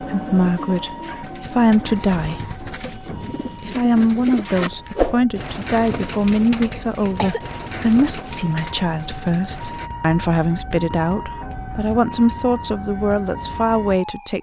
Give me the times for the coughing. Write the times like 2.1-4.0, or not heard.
6.6-7.4.